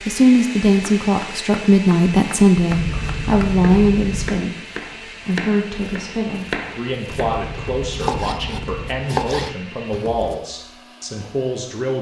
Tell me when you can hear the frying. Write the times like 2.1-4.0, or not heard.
not heard.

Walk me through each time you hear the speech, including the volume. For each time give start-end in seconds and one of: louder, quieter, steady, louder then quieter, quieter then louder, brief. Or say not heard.
0.1-11.9 quieter.